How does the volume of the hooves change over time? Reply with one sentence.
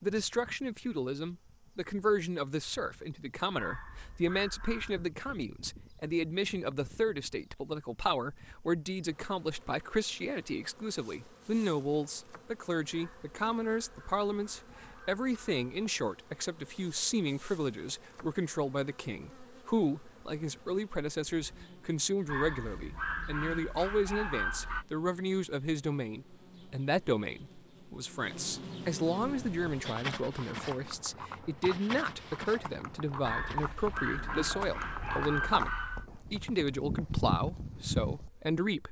The loudness of the hooves goes up.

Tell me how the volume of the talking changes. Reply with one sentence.
The loudness of the talking stays about the same.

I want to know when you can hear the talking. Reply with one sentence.
You can hear the talking from 0.0 to 38.8 s.